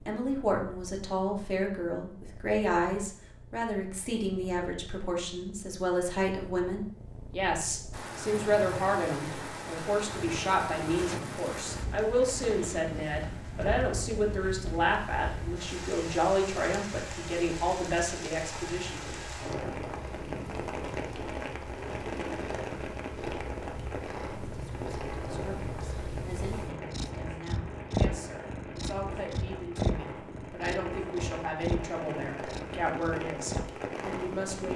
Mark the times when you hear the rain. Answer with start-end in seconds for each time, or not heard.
7.9-34.7.